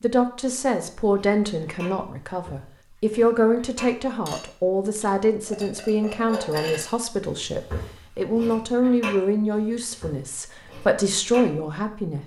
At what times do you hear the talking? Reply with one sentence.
You can hear the talking from 0.0 to 12.2 s.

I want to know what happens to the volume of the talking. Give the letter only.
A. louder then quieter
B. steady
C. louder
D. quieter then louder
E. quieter
B.